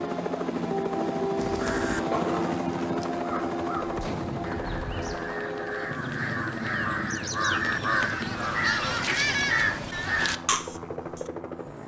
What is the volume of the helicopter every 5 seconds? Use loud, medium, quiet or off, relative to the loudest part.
loud, medium, medium.